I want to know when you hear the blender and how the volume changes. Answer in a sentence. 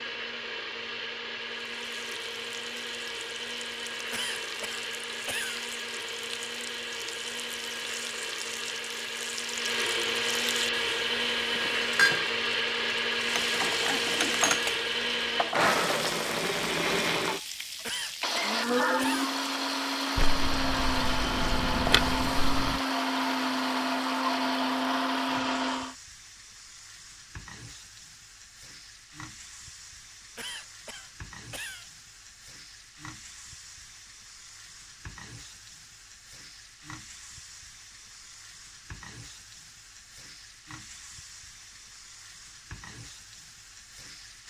You can hear the blender from 0.0 to 25.9 s, getting louder.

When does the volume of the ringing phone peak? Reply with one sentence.
The volume of the ringing phone peaks at 22 seconds.